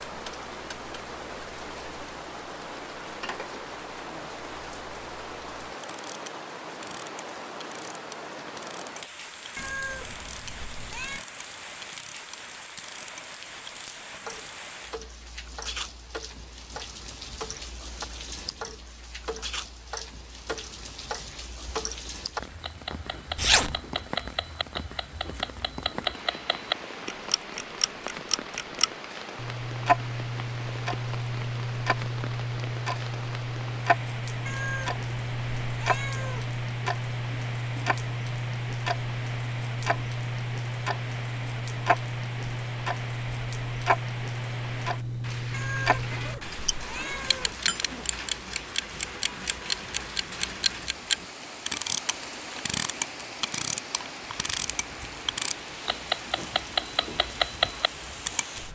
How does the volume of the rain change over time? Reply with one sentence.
The loudness of the rain stays about the same.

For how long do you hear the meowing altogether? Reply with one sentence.
The meowing can be heard for 6 seconds in total.